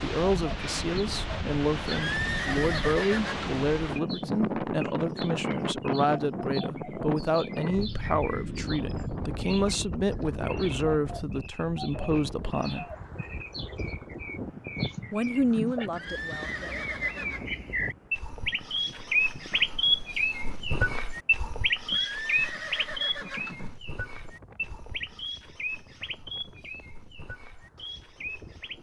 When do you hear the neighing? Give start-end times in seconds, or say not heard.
1.9-3.6, 15.9-17.4, 21.9-23.8.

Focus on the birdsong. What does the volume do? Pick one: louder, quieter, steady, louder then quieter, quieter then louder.
louder then quieter.